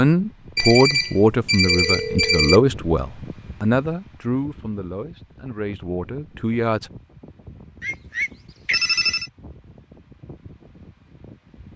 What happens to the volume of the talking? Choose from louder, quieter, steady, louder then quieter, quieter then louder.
quieter.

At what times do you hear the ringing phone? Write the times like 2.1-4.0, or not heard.
0.6-2.6, 7.8-9.3.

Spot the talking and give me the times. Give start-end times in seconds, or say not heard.
0.0-6.9.